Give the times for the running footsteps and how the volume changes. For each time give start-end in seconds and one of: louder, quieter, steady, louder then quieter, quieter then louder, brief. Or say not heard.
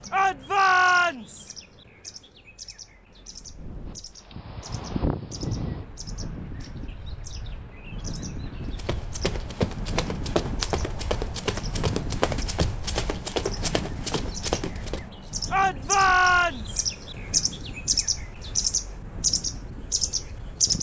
8.6-15.1 steady.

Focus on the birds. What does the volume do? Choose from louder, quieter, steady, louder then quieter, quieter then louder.
louder.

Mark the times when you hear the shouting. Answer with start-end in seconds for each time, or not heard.
0.1-1.5, 15.5-16.8.